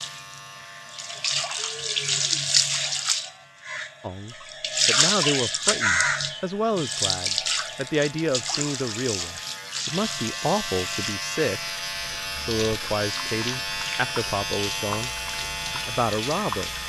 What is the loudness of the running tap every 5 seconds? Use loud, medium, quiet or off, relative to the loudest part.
loud, loud, medium, medium.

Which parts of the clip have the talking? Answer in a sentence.
The talking can be heard from 4.0 to 11.8 s, from 12.3 to 15.1 s and from 15.7 to 16.7 s.